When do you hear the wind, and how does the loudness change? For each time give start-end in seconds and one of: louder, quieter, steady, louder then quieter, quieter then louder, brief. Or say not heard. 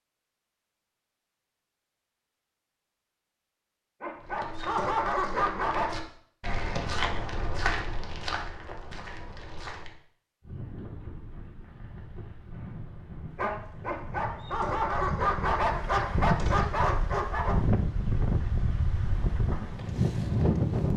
10.4-20.9 louder.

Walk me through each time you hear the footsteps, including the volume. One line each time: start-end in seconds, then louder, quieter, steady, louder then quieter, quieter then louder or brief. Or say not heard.
4.2-9.9 louder then quieter.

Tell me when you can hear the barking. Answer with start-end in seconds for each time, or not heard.
4.0-6.0, 13.3-17.6.